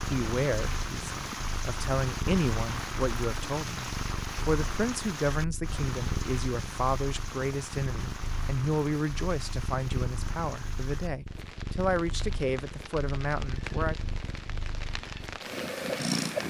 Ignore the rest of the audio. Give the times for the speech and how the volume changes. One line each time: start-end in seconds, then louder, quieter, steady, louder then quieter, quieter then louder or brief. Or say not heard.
0.0-13.9 steady.